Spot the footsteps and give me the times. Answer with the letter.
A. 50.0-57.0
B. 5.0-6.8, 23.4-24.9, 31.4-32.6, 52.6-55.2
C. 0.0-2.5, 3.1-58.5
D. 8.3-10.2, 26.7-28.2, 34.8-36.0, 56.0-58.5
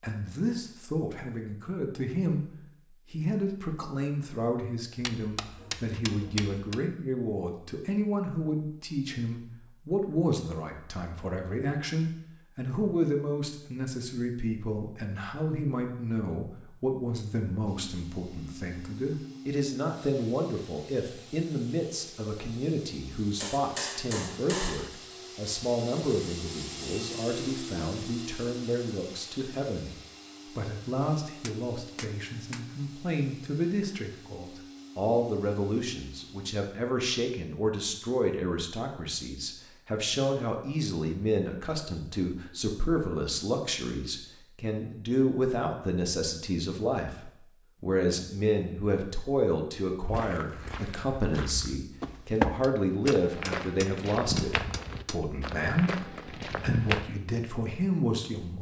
A.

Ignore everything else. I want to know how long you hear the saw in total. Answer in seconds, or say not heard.
not heard.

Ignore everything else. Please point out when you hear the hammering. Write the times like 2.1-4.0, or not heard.
5.0-6.8, 23.4-24.9, 31.4-32.6, 52.6-55.2.